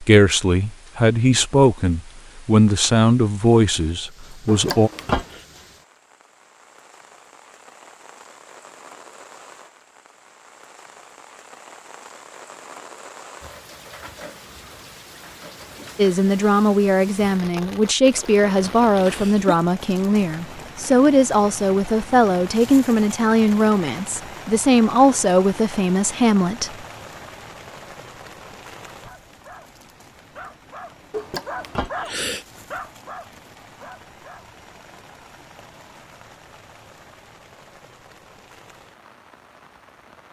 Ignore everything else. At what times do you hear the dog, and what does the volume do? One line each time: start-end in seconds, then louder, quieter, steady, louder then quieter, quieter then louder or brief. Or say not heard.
29.0-34.5 louder then quieter.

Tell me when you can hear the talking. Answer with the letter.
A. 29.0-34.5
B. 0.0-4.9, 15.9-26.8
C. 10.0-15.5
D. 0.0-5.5
B.